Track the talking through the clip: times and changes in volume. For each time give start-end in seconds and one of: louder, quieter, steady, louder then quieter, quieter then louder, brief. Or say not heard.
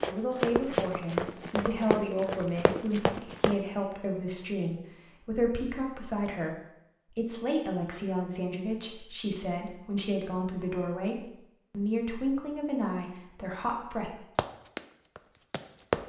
0.1-14.1 steady.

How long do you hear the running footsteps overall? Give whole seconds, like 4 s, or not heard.
5 s.